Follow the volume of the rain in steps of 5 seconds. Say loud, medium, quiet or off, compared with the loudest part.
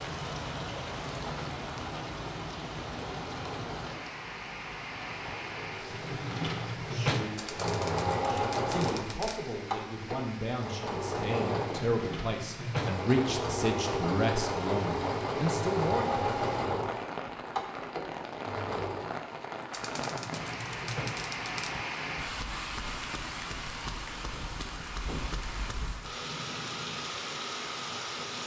loud, medium, medium, loud, loud, loud.